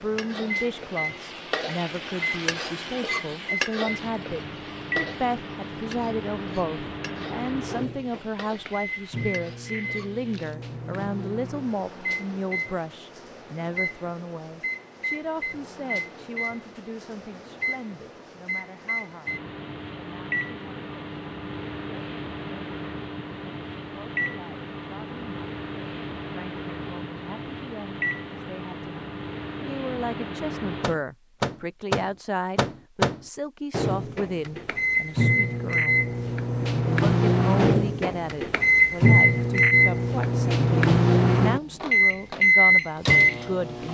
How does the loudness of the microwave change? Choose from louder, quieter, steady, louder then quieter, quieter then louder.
louder.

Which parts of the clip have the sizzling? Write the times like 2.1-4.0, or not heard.
0.0-10.6.